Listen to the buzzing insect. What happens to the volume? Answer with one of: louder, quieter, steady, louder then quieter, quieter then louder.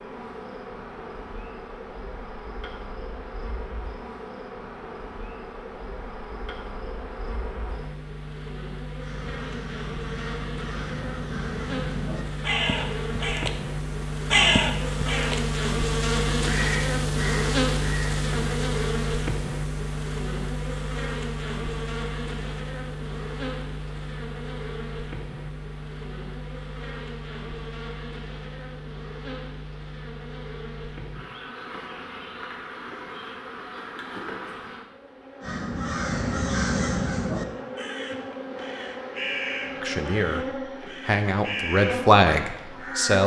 louder then quieter.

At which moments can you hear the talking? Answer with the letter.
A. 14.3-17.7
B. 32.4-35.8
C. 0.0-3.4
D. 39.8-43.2
D.